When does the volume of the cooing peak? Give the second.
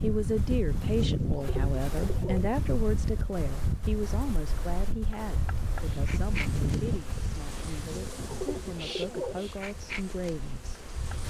9 s.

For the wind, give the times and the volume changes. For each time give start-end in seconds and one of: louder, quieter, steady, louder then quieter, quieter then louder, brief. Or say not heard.
0.0-11.2 quieter.